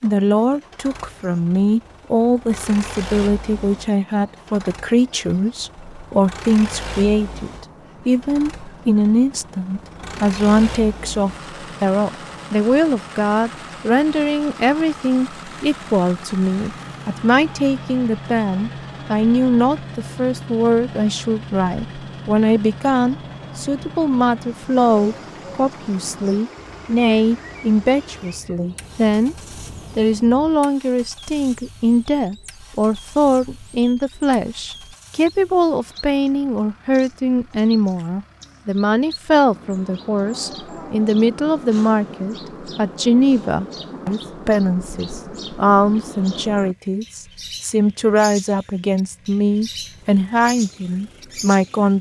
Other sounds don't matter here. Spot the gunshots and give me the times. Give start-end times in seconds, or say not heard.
not heard.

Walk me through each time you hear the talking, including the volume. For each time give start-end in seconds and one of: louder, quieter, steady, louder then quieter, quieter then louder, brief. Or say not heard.
0.0-29.4 steady
29.9-51.9 steady.